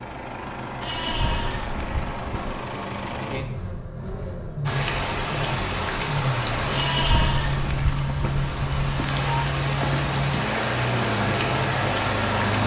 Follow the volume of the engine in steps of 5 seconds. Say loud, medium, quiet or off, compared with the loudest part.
medium, loud, loud.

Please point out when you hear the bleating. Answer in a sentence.
You can hear the bleating from 0.8 to 2.6 s and from 6.7 to 9.4 s.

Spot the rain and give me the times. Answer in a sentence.
You can hear the rain from 4.7 to 12.6 s.